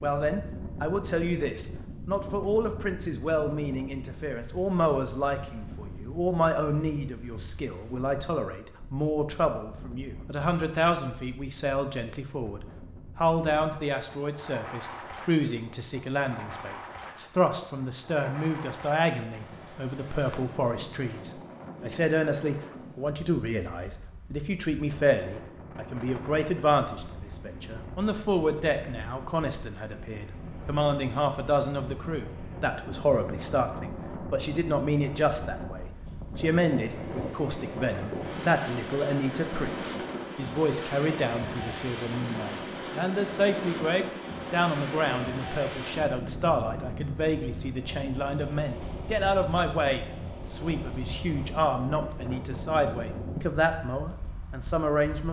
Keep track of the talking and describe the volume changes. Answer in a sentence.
The volume of the talking stays about the same.